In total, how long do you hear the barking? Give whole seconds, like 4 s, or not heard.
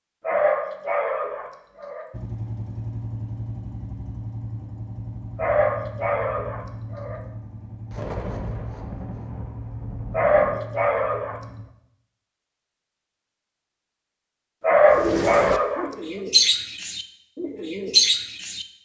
6 s.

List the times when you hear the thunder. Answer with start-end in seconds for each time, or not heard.
7.9-10.7.